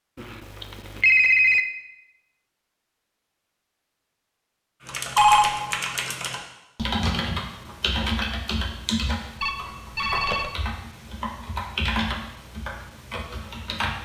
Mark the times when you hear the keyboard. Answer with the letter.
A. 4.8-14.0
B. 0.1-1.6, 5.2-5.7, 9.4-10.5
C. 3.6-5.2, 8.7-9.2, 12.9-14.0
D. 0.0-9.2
A.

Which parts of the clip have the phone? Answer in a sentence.
The phone can be heard from 0.1 to 1.6 s, from 5.2 to 5.7 s and from 9.4 to 10.5 s.